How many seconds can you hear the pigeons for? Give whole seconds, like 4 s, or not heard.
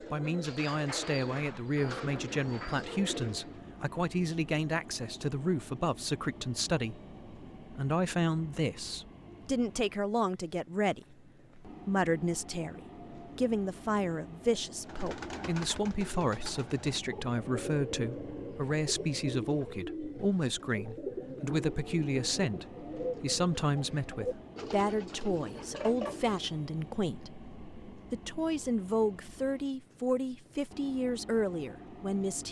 15 s.